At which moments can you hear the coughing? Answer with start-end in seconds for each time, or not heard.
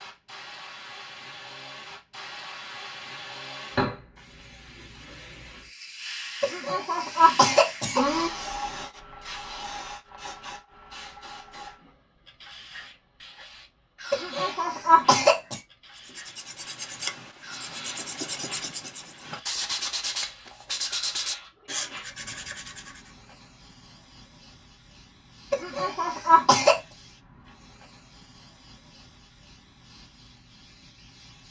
6.4-8.3, 14.1-15.6, 25.5-26.8.